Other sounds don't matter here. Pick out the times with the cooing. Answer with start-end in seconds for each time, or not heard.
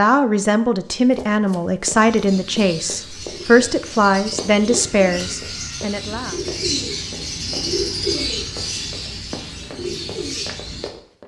2.0-10.9.